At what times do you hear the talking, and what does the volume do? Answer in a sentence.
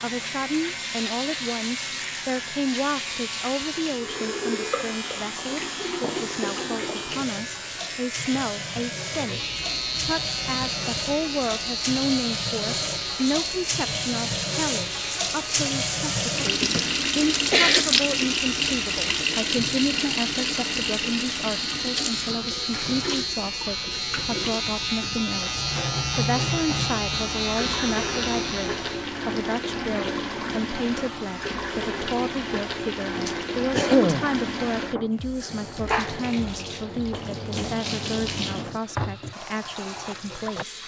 You can hear the talking from 0.0 to 40.8 s, at a steady volume.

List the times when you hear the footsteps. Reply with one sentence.
The footsteps can't be heard in this clip.